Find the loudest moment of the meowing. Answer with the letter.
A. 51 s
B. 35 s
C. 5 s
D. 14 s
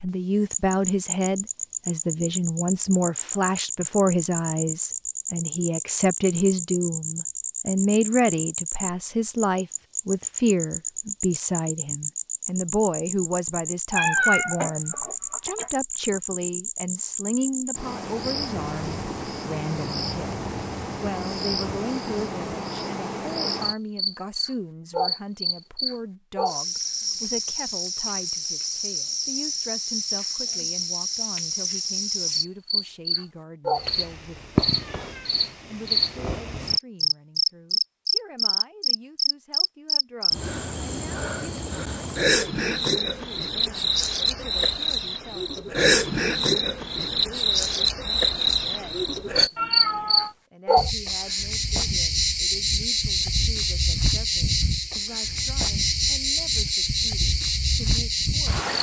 D.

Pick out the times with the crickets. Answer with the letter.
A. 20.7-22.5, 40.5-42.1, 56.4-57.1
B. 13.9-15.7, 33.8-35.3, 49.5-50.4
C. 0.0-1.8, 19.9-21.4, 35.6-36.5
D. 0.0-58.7
D.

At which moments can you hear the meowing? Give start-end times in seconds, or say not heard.
13.9-15.7, 33.8-35.3, 49.5-50.4.